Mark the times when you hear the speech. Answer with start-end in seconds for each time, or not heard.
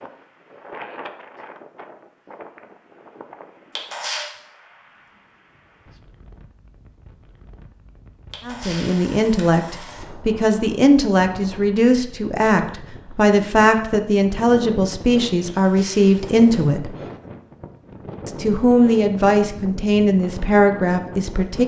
8.4-16.9, 18.2-21.6.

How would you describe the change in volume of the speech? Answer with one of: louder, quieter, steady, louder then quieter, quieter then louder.
steady.